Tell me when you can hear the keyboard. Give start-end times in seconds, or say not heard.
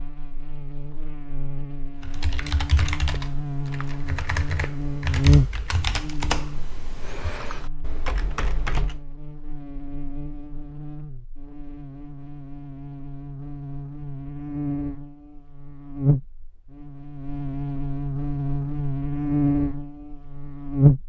2.0-9.0.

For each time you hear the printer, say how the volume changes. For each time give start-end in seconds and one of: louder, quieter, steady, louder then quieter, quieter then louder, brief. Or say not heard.
not heard.